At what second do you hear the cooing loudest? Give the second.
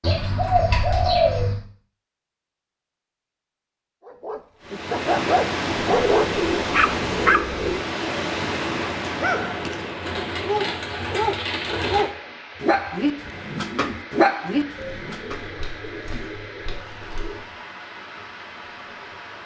1 s.